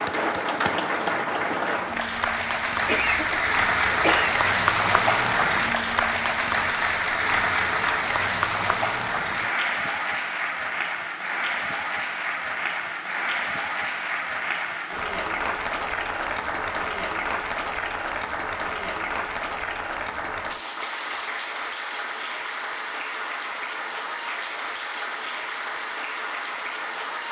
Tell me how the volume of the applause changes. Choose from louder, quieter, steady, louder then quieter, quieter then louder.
quieter.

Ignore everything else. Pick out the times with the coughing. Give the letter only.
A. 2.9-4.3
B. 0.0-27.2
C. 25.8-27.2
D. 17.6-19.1
A.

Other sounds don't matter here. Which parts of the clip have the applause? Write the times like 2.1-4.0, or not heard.
0.0-27.2.